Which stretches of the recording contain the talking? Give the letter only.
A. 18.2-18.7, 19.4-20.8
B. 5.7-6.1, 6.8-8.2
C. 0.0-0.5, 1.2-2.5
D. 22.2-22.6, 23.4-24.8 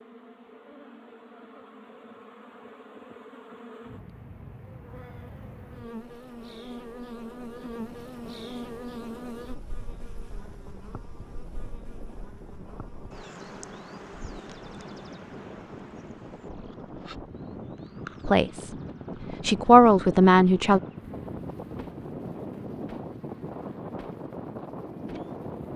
A.